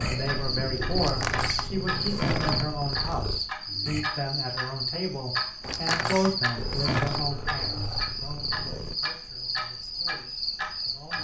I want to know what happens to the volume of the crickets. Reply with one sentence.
The loudness of the crickets stays about the same.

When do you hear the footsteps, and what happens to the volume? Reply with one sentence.
The footsteps can't be heard in this clip.